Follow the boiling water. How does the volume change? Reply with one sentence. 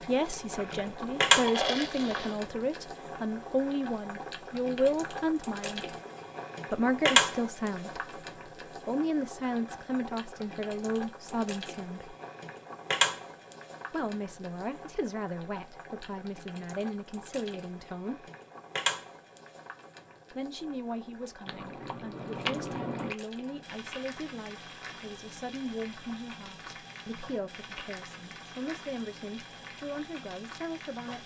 The volume of the boiling water goes down.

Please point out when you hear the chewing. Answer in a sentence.
The chewing can be heard from 0.6 to 2.4 s and from 21.4 to 23.1 s.